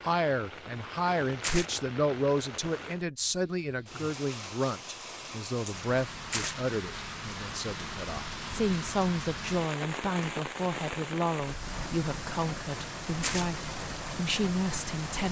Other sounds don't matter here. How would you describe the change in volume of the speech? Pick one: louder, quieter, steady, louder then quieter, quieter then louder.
steady.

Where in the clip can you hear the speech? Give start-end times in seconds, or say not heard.
0.0-15.2.